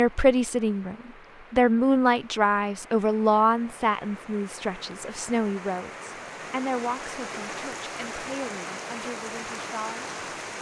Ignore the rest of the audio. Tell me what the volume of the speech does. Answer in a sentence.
The loudness of the speech goes down.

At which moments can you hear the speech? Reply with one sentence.
You can hear the speech from 0.0 to 10.2 s.